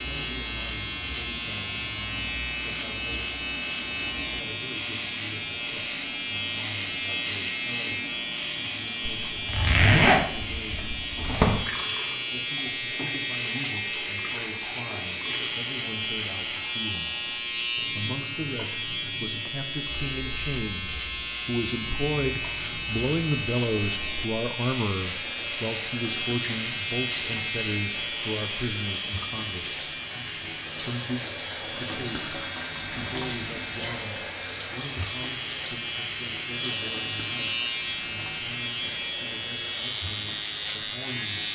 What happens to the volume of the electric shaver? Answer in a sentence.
The volume of the electric shaver stays about the same.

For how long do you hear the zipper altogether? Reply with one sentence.
You can hear the zipper for 2 seconds altogether.